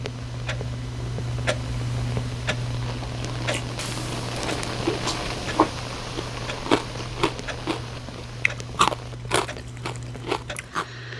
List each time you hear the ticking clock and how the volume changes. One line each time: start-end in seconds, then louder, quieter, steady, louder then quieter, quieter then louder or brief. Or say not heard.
0.0-11.1 quieter.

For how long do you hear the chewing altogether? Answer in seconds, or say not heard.
8 s.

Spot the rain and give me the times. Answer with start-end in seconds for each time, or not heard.
0.0-9.2.